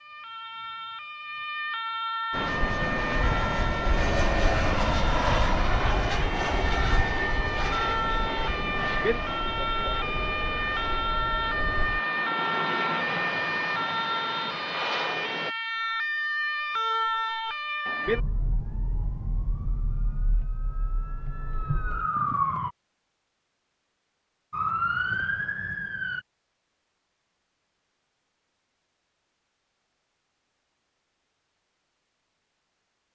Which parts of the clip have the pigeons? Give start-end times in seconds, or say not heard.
not heard.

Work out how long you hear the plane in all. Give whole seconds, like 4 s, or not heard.
13 s.